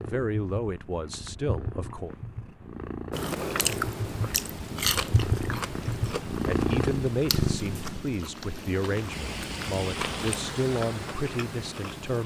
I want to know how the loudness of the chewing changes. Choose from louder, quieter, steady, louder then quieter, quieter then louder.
quieter.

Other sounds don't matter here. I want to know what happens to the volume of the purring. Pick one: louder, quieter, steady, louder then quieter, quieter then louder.
louder.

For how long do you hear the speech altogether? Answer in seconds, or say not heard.
8 s.